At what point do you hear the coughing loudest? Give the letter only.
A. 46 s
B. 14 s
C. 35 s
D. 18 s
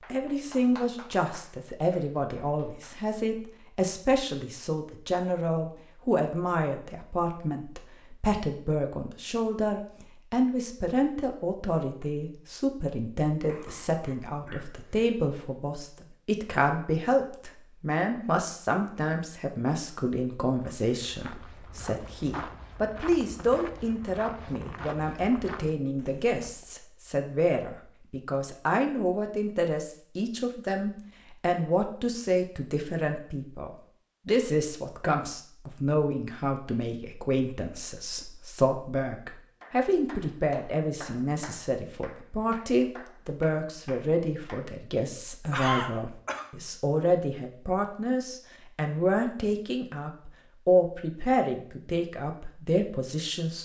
A.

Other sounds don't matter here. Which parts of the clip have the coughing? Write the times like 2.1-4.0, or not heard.
13.4-14.9, 45.5-46.5.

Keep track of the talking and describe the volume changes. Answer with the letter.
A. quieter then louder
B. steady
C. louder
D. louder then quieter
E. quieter
B.